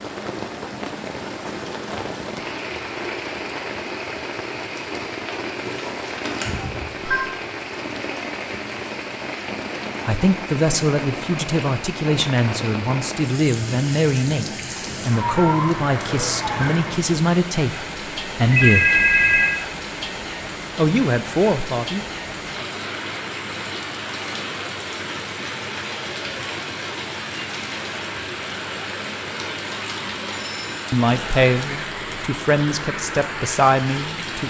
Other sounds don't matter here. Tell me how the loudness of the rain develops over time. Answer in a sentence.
The loudness of the rain stays about the same.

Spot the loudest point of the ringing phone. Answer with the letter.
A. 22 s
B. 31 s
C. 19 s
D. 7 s
C.